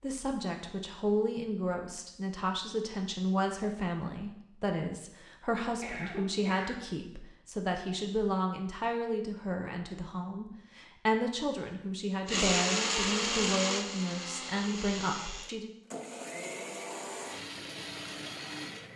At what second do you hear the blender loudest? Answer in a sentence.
The volume of the blender peaks at 13 seconds.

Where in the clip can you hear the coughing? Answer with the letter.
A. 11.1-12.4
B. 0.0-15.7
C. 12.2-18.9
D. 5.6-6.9
D.